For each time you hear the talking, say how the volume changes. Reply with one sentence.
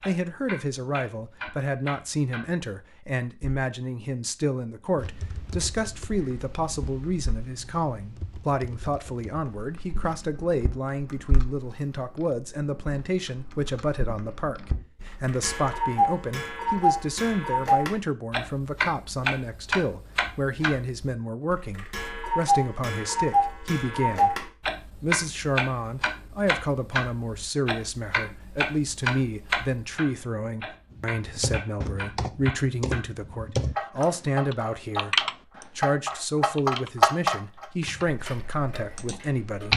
The talking can be heard from 0.1 to 39.7 s, at a steady volume.